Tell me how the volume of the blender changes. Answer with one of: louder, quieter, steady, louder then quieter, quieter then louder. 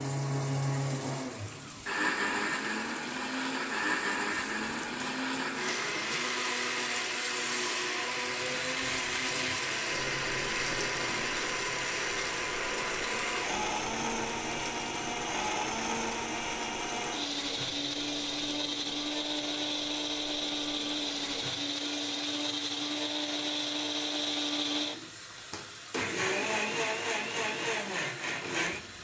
steady.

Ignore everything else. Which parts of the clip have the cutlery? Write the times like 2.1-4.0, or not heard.
not heard.